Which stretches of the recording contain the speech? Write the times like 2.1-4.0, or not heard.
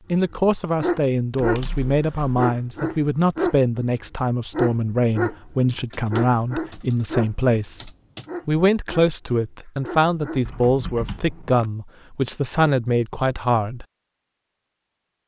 0.1-13.8.